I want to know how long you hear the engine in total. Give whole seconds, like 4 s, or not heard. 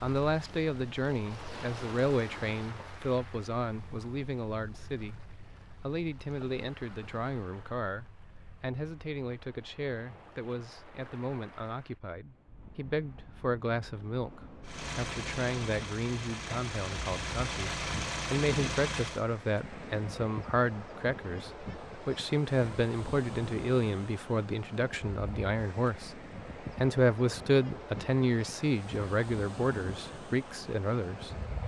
5 s.